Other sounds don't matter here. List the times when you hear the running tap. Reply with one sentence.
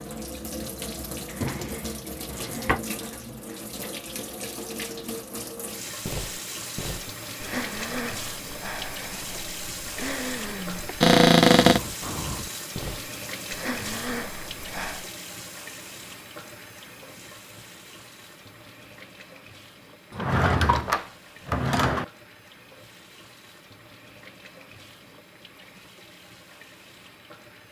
You can hear the running tap from 0.0 to 27.6 s.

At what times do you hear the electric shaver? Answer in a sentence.
The electric shaver can't be heard in this clip.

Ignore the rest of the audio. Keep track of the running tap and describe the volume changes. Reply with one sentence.
The volume of the running tap goes down.